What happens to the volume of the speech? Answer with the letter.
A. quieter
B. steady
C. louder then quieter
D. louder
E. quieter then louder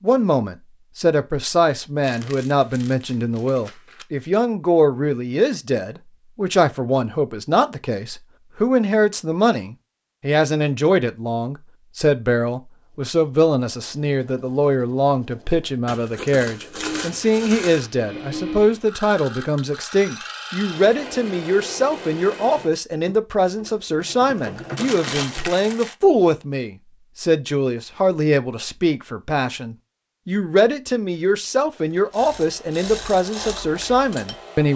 B.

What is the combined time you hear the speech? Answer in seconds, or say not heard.
35 s.